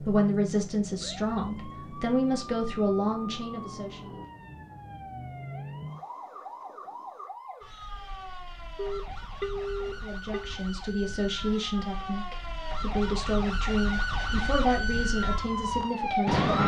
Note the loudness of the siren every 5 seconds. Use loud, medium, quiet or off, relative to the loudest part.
quiet, quiet, medium, loud.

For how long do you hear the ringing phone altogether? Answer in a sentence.
The ringing phone can be heard for 2 seconds in total.